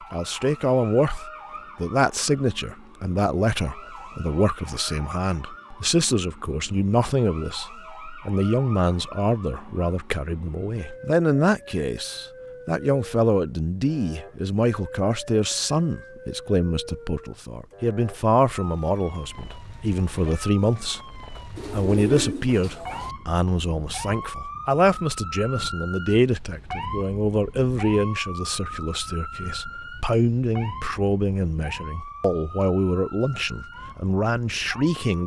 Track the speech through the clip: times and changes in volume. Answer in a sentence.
The speech can be heard from 0.1 to 35.2 s, at a steady volume.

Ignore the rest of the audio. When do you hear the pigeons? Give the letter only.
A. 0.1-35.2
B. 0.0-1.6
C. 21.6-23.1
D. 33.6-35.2
C.